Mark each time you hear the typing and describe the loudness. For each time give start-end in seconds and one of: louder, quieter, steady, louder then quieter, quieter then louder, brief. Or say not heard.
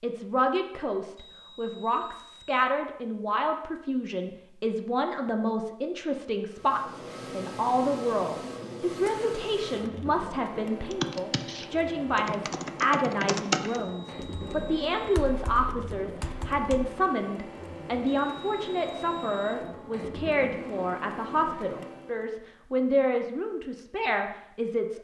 10.9-16.9 louder then quieter.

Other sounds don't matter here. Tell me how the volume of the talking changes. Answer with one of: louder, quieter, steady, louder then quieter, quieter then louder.
steady.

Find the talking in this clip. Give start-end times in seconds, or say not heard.
0.0-24.9.